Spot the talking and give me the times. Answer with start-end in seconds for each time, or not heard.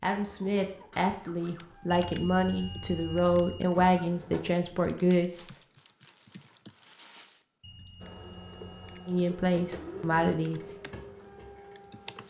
0.0-5.4, 9.1-10.6.